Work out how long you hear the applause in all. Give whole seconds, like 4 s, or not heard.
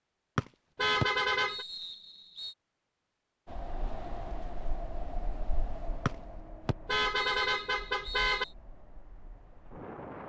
not heard.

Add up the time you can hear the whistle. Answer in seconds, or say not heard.
5 s.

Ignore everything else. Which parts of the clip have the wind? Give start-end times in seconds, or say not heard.
3.5-10.2.